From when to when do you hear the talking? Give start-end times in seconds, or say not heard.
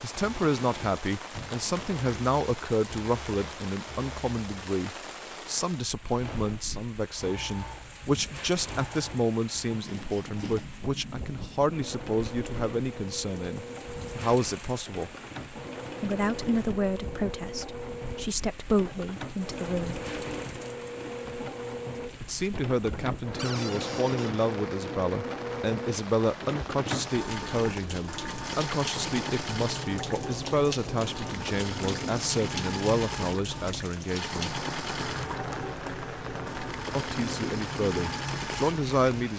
0.0-15.2, 16.0-20.0, 22.2-34.5, 37.0-39.3.